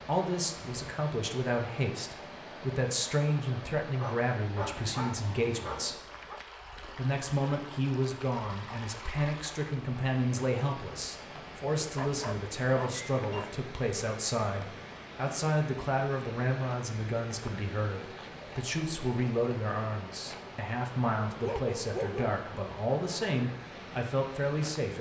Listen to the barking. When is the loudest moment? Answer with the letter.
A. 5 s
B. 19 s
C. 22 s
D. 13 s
C.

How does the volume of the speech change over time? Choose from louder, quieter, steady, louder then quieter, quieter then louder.
steady.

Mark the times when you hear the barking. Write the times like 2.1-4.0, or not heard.
4.0-6.4, 11.9-13.5, 21.4-22.4.